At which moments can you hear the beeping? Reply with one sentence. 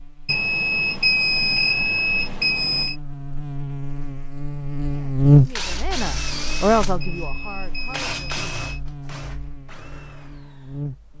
The beeping can be heard from 0.2 to 3.0 s and from 7.0 to 8.8 s.